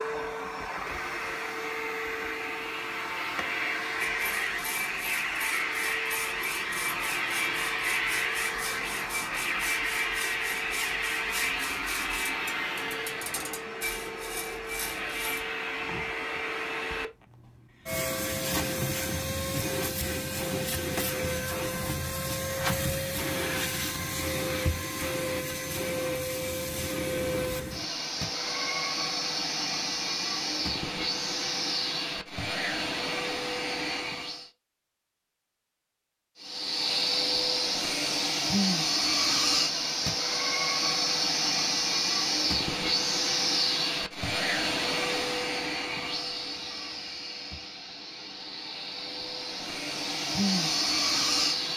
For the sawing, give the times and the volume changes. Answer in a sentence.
The sawing can be heard from 4.0 to 15.4 s, at a steady volume.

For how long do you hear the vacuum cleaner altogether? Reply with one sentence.
The vacuum cleaner can be heard for 50 seconds in total.